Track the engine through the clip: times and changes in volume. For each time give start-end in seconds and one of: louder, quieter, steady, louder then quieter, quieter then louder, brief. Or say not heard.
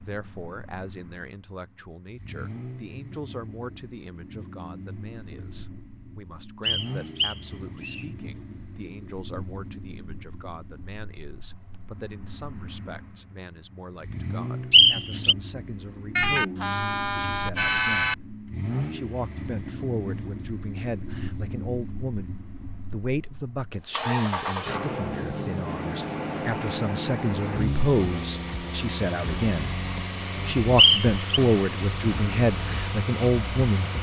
0.0-33.9 louder.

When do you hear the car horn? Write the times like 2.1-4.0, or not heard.
16.1-18.1.